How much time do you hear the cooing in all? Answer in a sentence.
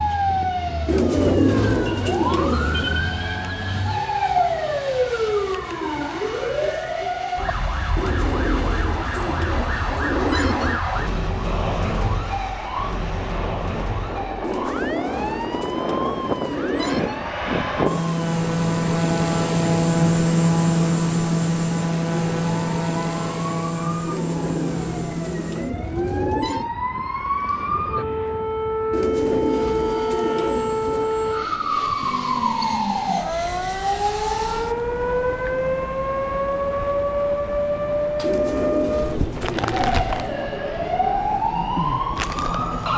You can hear the cooing for 15 seconds altogether.